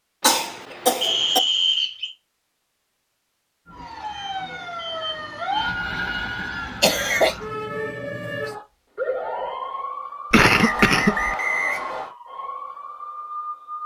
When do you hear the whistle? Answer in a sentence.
The whistle can be heard from 1.0 to 2.1 s and from 10.4 to 12.1 s.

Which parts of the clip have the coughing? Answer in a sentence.
The coughing can be heard from 0.2 to 1.4 s, from 6.8 to 7.3 s and from 10.3 to 11.3 s.